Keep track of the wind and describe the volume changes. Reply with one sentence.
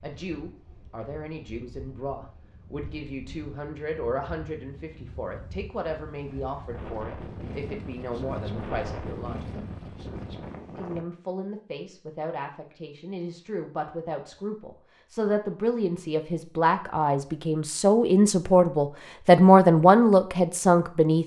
The volume of the wind goes up.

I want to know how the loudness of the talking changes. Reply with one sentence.
The loudness of the talking goes up.